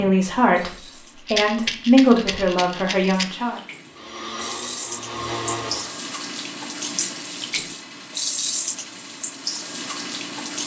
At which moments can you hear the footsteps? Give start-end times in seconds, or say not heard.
not heard.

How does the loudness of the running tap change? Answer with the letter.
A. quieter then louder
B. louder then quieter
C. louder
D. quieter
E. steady
C.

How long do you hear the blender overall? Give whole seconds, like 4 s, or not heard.
2 s.